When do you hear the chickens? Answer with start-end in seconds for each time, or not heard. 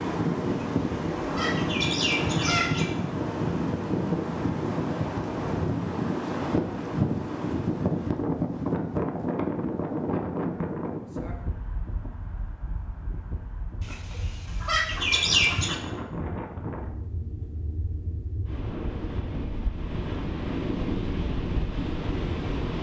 0.5-2.9, 13.8-15.8.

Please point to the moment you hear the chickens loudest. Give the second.
15 s.